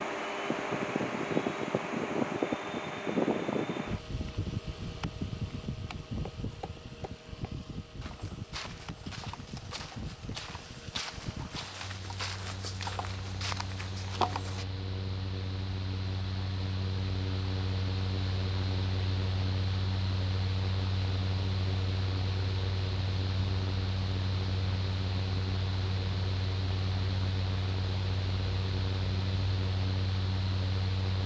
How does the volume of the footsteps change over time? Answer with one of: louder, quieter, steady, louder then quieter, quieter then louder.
louder.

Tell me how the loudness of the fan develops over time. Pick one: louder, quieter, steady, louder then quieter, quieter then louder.
quieter then louder.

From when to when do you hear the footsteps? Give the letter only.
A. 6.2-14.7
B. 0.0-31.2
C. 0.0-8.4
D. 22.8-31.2
A.